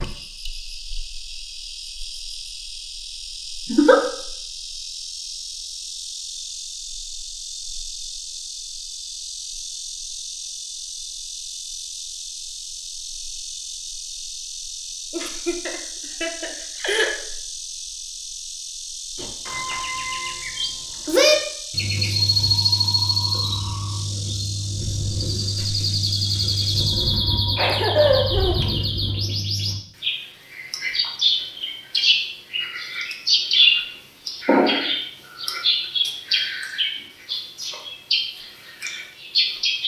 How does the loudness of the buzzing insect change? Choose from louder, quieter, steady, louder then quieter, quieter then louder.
steady.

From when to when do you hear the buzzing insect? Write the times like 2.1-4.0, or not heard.
0.0-27.1.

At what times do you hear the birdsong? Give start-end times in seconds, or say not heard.
19.1-39.8.